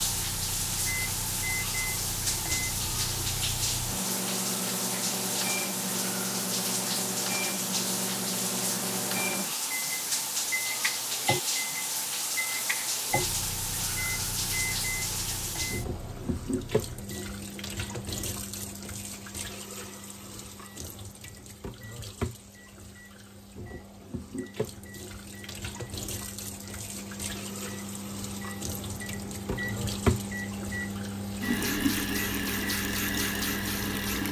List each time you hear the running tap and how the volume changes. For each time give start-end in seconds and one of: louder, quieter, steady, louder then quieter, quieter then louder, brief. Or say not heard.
0.0-34.2 quieter then louder.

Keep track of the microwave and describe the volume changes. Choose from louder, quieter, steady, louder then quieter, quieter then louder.
quieter then louder.